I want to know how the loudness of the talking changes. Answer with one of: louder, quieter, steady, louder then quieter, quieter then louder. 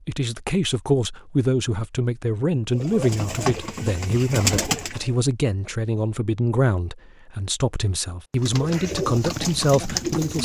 steady.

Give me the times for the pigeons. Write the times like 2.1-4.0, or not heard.
2.7-5.1, 8.4-10.4.